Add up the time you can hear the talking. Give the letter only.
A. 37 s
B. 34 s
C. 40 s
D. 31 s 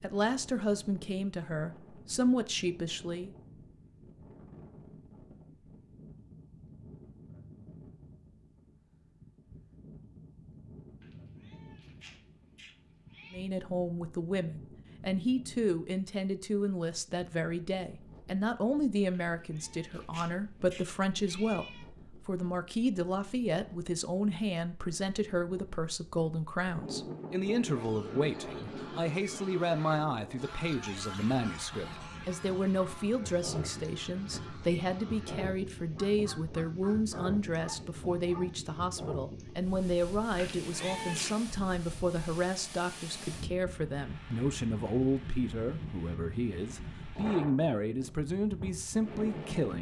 C.